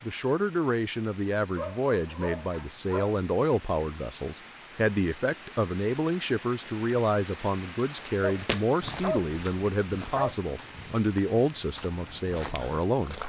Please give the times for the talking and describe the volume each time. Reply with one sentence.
The talking can be heard from 0.0 to 13.2 s, at a steady volume.